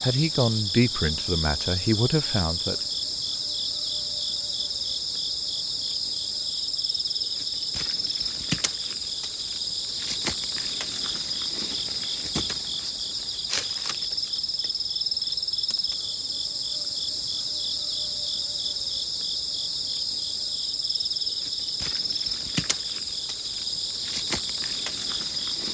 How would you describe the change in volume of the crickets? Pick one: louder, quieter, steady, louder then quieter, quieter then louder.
steady.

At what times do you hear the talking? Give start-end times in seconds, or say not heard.
0.0-2.8.